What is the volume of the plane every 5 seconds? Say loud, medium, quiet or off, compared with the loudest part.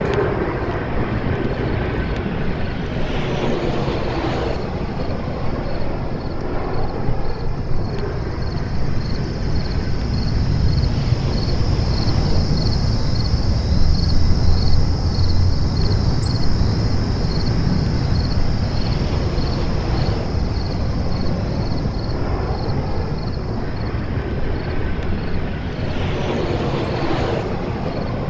loud, medium, medium, medium, medium, loud.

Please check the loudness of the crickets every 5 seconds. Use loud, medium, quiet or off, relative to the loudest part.
quiet, medium, loud, loud, medium, medium.